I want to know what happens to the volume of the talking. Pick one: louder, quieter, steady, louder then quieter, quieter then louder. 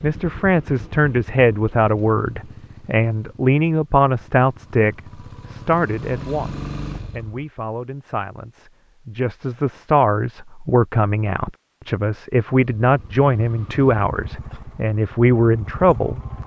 quieter then louder.